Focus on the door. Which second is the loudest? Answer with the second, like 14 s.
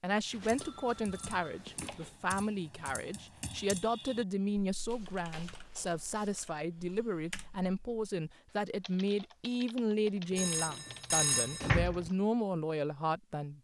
12 s.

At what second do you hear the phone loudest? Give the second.
11 s.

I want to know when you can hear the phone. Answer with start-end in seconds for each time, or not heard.
0.3-2.1, 4.9-6.5, 10.3-11.7.